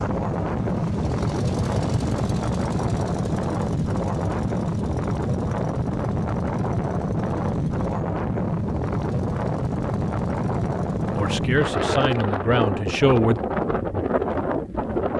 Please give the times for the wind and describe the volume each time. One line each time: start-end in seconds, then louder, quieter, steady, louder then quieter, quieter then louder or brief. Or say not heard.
0.0-15.1 steady.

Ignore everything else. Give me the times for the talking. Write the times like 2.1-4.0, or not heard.
11.2-13.4.